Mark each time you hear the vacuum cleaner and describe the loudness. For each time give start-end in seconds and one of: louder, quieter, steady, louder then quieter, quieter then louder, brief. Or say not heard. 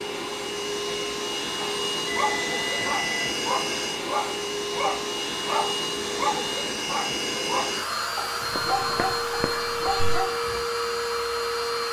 0.0-11.8 steady.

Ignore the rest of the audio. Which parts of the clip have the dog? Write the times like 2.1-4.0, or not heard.
1.6-10.7.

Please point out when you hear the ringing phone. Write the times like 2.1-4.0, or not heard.
2.0-3.4, 8.4-9.2.